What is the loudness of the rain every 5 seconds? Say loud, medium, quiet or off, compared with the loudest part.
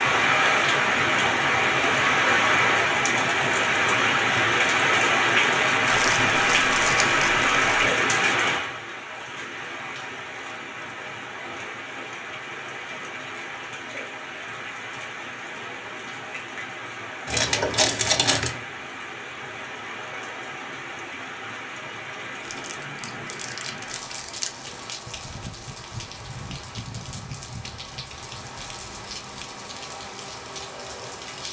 loud, loud, quiet, quiet, quiet, quiet, quiet.